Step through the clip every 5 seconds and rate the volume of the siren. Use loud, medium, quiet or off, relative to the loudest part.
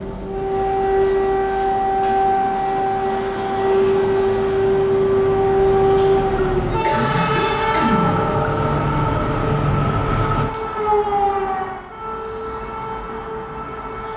loud, loud, medium.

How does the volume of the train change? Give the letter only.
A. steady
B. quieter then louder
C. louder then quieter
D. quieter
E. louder
E.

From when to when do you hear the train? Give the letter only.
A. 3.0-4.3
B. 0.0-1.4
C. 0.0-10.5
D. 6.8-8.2
C.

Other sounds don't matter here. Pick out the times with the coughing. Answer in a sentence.
You can hear the coughing from 6.8 to 8.2 s.